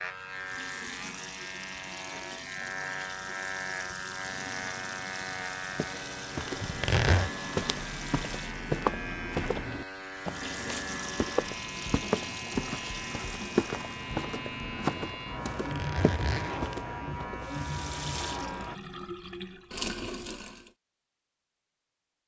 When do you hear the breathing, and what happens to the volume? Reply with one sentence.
The breathing can't be heard in this clip.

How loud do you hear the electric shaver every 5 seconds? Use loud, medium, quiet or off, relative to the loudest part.
loud, loud, loud, loud, off.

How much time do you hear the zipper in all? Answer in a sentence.
You can hear the zipper for 2 seconds altogether.